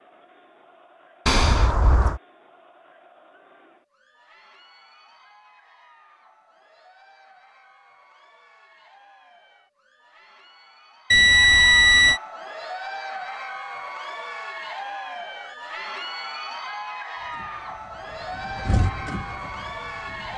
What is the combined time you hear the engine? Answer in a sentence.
You can hear the engine for 3 seconds altogether.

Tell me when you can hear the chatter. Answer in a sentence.
The chatter can be heard from 0.0 to 20.3 s.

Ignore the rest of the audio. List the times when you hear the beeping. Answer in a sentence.
You can hear the beeping from 1.2 to 2.2 s and from 11.1 to 12.2 s.